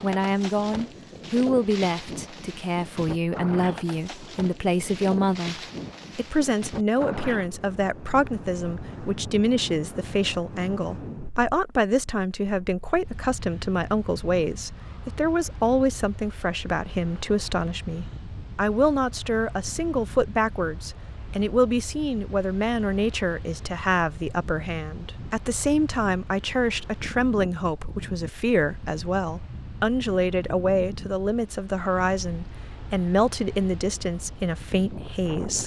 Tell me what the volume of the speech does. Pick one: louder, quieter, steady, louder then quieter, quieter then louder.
steady.